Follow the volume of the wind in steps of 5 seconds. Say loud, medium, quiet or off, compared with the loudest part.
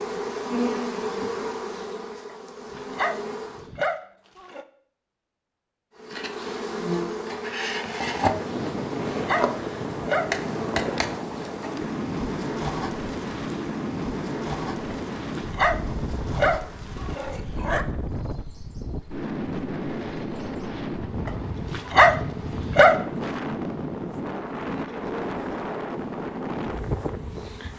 off, loud, loud, loud, loud, loud.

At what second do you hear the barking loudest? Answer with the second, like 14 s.
22 s.